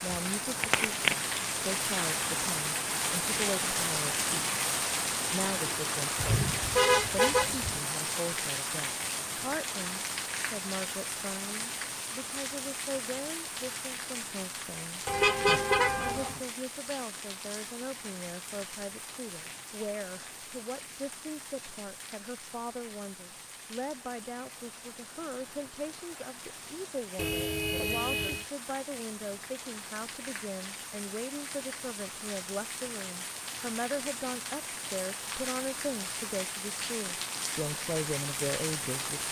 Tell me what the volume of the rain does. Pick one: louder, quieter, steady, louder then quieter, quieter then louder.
quieter then louder.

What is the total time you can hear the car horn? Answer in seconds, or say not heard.
4 s.